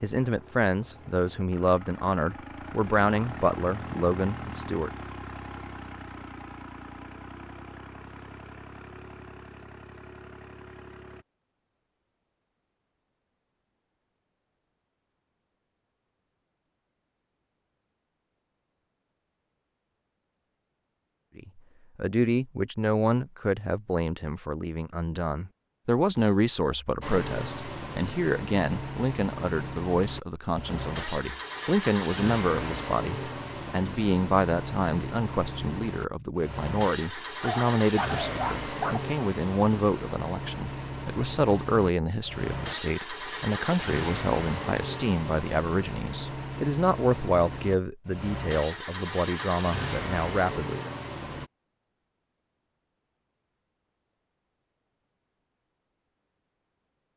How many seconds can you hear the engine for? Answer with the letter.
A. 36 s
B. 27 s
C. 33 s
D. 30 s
A.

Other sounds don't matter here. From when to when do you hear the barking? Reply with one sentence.
The barking can be heard from 37.4 to 39.1 s.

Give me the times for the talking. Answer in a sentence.
The talking can be heard from 0.0 to 4.9 s and from 21.4 to 50.9 s.